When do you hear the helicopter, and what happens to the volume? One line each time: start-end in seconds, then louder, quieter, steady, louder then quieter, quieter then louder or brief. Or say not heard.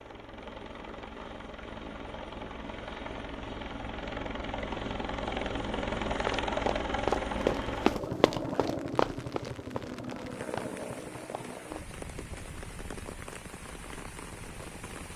0.0-15.1 louder then quieter.